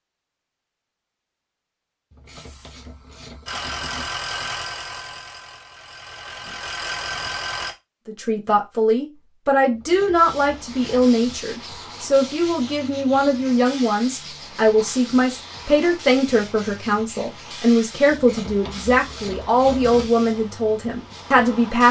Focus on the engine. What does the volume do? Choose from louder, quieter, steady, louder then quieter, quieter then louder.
quieter then louder.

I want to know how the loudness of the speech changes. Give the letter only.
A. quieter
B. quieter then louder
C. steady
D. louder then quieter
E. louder
C.